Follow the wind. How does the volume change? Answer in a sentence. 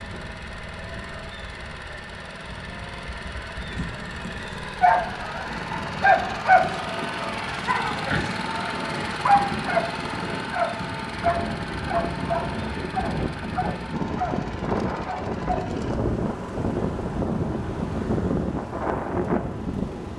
The loudness of the wind goes up.